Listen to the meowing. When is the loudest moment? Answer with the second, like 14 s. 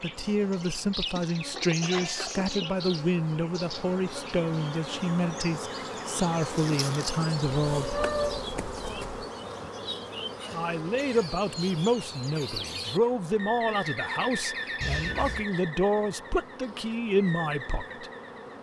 8 s.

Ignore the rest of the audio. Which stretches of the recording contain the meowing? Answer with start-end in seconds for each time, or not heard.
1.8-2.4, 7.7-9.2, 14.8-15.4.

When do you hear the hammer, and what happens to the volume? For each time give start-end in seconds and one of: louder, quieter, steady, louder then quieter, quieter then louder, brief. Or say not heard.
not heard.